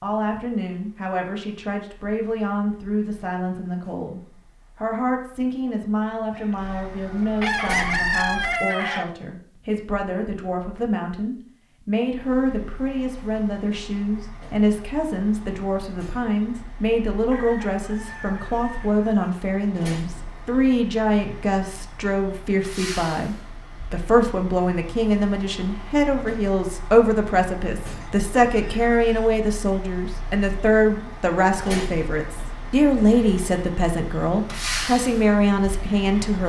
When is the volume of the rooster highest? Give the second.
8 s.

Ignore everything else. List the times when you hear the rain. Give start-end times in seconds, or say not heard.
not heard.